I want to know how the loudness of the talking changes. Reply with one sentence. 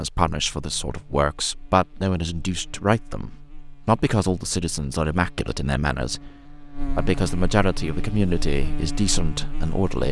The volume of the talking stays about the same.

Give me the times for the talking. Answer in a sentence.
You can hear the talking from 0.0 to 6.3 s and from 6.9 to 10.0 s.